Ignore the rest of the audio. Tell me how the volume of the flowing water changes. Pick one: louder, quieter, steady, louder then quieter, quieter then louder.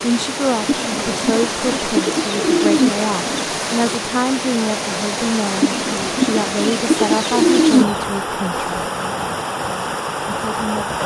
steady.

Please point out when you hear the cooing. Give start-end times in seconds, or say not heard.
0.7-3.5, 5.6-8.1.